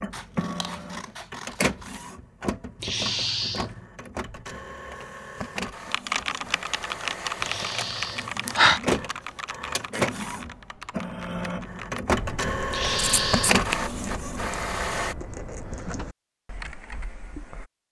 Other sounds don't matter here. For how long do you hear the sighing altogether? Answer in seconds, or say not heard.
3 s.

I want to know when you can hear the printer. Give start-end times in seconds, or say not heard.
0.0-15.2.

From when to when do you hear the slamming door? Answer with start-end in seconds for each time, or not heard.
not heard.